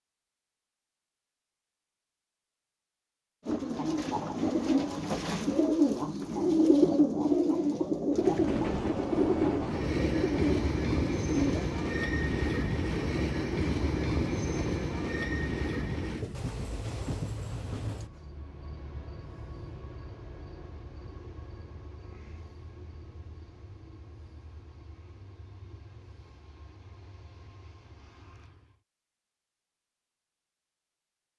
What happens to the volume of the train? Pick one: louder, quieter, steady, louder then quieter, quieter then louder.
quieter.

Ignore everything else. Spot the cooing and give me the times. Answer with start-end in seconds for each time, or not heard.
3.5-11.8.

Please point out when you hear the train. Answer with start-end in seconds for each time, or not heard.
8.1-28.8.